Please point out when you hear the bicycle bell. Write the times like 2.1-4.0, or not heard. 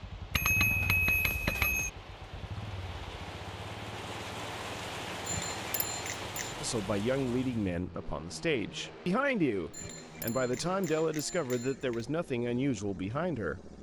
0.3-1.9, 5.2-6.5, 9.7-12.1.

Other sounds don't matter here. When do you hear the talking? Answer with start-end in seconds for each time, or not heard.
6.6-13.7.